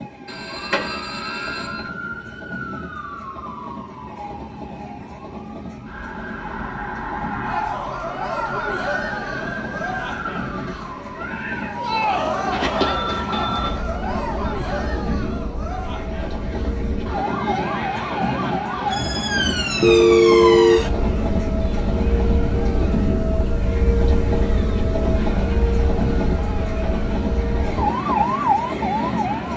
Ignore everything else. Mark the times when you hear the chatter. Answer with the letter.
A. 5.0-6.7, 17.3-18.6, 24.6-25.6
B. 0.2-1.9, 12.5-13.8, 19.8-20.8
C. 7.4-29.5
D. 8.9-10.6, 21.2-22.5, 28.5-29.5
C.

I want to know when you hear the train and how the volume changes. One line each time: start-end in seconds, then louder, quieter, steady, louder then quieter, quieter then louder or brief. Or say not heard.
0.0-29.5 louder.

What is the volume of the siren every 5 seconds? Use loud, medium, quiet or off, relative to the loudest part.
medium, medium, medium, loud, loud, loud.